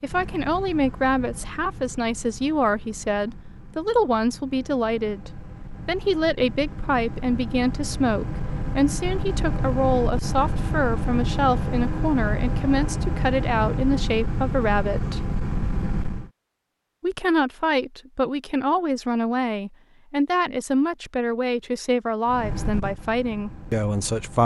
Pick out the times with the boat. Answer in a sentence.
You can hear the boat from 0.0 to 16.3 s and from 22.2 to 24.4 s.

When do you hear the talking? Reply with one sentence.
The talking can be heard from 0.0 to 15.3 s and from 17.0 to 24.4 s.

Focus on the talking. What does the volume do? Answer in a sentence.
The volume of the talking stays about the same.